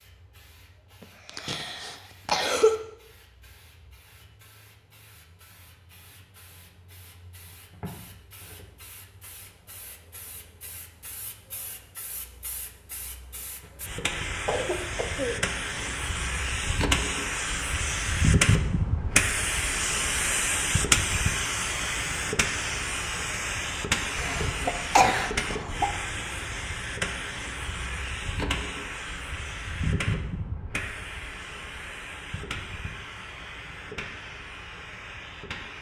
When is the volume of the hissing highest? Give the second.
19 s.